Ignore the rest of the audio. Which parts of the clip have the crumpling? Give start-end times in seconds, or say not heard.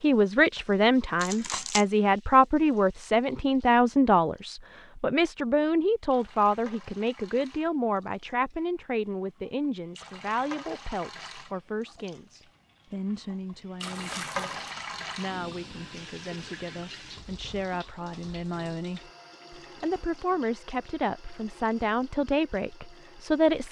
1.2-1.9, 13.8-14.6.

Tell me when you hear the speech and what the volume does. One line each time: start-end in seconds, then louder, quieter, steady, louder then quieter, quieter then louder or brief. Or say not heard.
0.0-23.6 quieter then louder.